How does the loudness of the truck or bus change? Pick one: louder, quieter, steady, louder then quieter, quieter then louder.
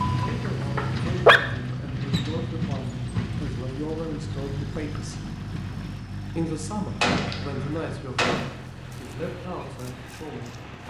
quieter.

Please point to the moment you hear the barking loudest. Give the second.
1 s.